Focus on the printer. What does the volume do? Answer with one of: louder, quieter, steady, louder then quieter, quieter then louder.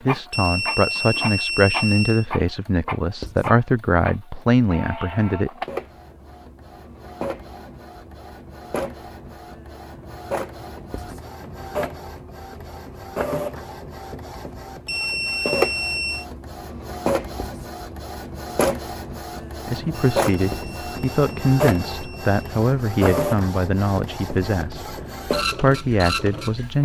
louder.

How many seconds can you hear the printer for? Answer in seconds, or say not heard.
27 s.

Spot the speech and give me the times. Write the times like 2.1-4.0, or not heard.
0.0-5.5, 19.6-26.8.